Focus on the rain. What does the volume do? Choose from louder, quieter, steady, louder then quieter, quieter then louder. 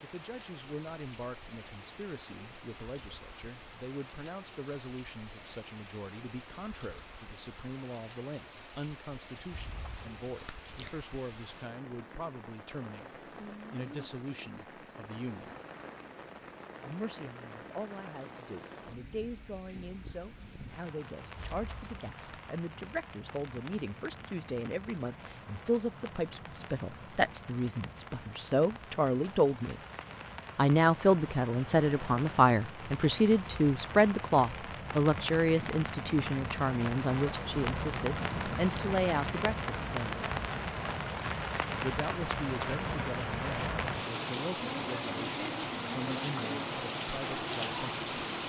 louder.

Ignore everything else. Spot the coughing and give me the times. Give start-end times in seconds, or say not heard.
not heard.